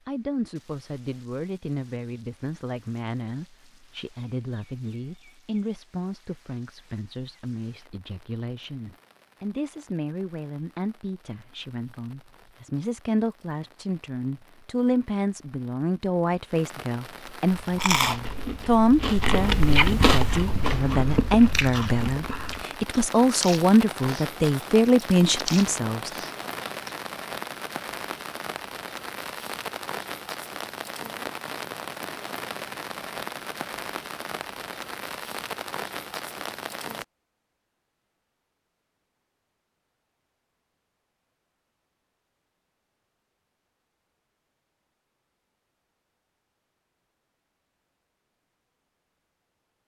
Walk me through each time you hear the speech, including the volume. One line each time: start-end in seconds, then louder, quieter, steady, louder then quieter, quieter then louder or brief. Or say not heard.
0.1-26.1 louder.